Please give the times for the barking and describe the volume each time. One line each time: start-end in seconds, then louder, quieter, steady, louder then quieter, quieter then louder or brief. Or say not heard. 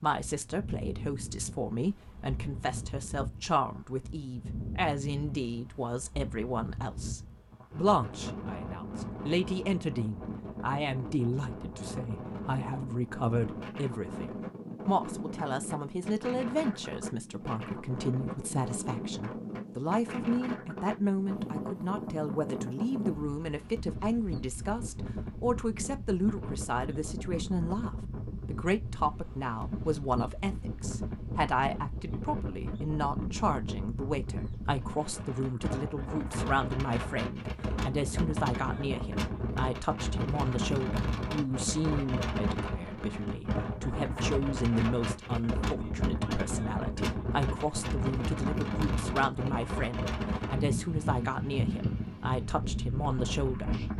not heard.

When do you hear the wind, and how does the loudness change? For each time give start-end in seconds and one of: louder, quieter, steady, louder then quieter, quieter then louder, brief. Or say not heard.
0.1-53.9 louder.